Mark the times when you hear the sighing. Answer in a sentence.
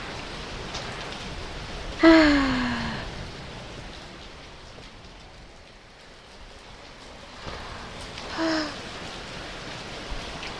You can hear the sighing from 2.0 to 3.0 s and from 7.3 to 8.8 s.